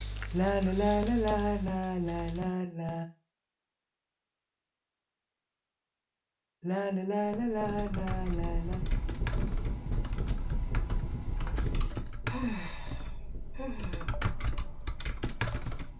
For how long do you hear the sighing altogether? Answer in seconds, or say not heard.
8 s.